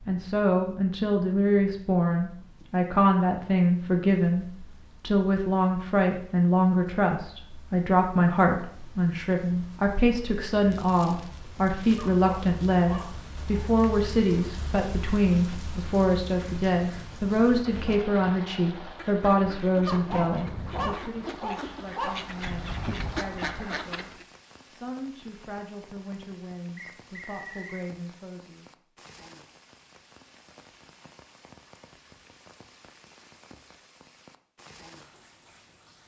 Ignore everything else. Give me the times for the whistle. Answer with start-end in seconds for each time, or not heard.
26.8-27.9.